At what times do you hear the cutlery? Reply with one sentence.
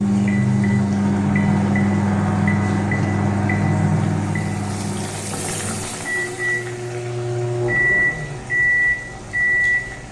You can't hear the cutlery here.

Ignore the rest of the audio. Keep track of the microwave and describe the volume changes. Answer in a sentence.
The volume of the microwave goes down, then up.